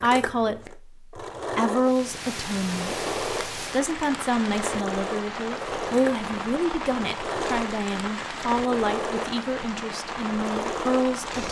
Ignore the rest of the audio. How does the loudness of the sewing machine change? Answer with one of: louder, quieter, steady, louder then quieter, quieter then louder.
steady.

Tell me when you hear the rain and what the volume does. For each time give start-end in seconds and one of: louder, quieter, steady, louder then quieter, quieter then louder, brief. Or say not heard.
1.8-11.4 steady.